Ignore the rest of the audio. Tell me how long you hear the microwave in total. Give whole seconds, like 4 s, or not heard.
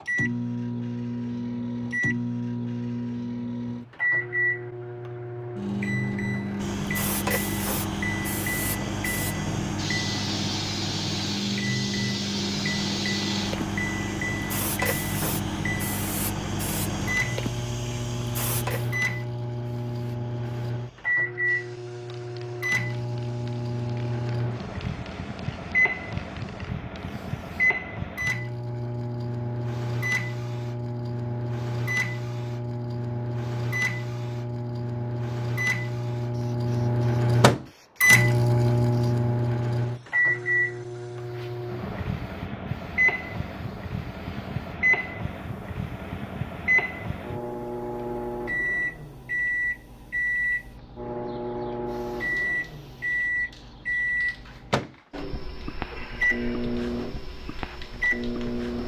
59 s.